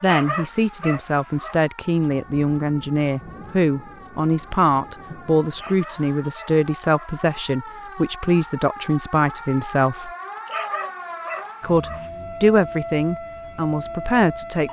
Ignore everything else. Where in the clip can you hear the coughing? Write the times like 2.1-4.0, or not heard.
not heard.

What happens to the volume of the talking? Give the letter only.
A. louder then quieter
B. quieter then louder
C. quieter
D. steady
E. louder
D.